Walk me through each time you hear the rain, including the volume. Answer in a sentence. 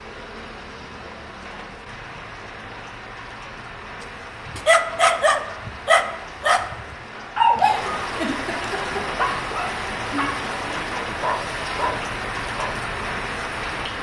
The rain can be heard from 0.0 to 13.9 s, getting louder.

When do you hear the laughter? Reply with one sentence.
The laughter can be heard from 7.6 to 9.1 s.